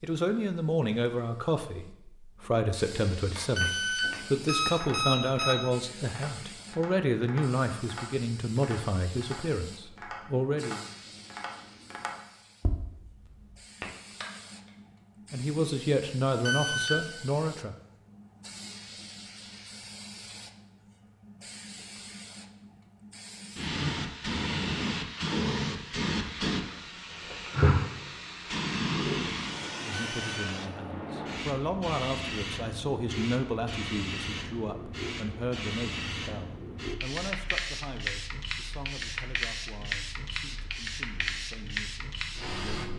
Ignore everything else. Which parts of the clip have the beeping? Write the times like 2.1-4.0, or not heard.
3.5-5.5, 16.4-17.0, 29.9-30.4.